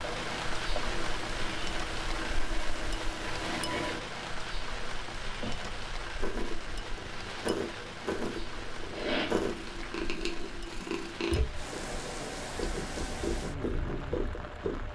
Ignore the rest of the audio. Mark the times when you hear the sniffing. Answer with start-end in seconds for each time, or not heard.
3.2-4.0, 8.9-9.8.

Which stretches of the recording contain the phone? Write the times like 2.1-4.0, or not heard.
not heard.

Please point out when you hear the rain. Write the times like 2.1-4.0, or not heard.
0.0-14.9.